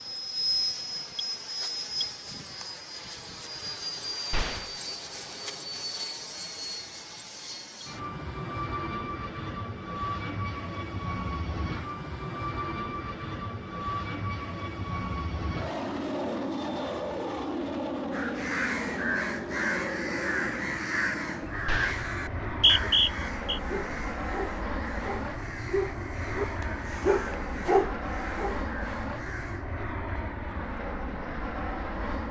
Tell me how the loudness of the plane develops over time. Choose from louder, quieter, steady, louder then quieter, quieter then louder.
steady.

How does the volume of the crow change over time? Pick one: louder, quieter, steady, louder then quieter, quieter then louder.
quieter.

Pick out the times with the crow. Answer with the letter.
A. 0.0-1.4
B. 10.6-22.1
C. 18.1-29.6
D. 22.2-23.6
C.